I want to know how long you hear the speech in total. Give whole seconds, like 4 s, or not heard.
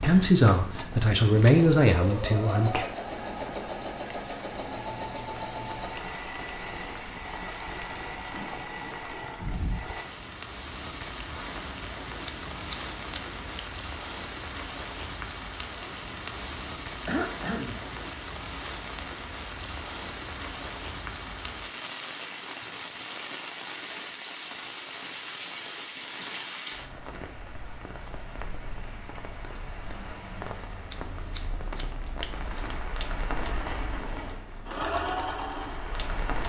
3 s.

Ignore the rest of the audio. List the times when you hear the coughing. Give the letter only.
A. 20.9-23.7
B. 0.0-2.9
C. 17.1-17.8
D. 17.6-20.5
C.